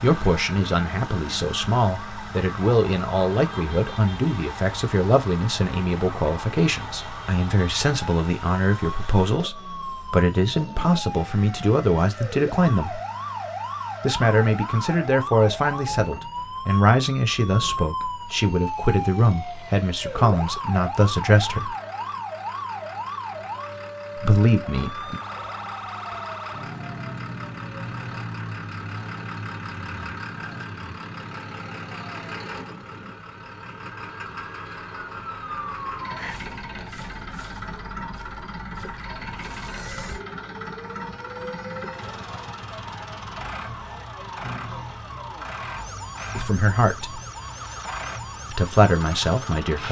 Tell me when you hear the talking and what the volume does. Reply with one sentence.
The talking can be heard from 0.0 to 13.0 s, at a steady volume; from 14.0 to 21.8 s, at a steady volume; briefly from 24.1 to 25.2 s; briefly from 46.4 to 47.2 s; and briefly from 48.5 to 49.8 s.